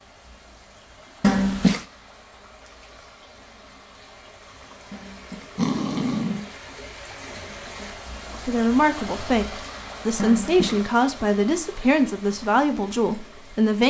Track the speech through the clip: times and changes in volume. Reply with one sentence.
You can hear the speech from 8.3 to 13.8 s, at a steady volume.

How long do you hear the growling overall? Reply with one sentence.
You can hear the growling for 3 seconds altogether.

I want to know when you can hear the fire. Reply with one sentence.
You can't hear the fire here.